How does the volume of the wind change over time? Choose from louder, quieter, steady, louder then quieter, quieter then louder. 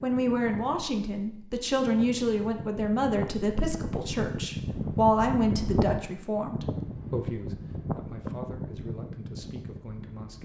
louder then quieter.